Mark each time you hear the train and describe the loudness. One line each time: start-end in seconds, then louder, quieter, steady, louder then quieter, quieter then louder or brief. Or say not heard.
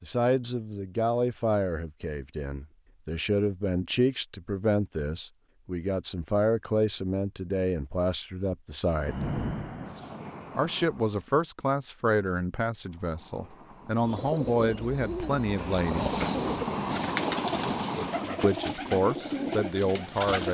8.8-11.2 brief
12.8-18.4 louder.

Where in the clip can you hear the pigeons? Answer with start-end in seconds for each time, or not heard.
14.0-20.4.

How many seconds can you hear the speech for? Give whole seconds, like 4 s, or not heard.
17 s.